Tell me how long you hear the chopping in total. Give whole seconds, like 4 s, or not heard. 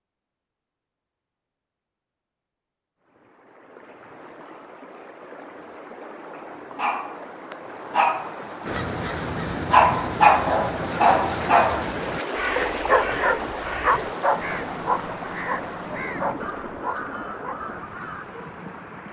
not heard.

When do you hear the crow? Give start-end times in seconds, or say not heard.
8.7-18.2.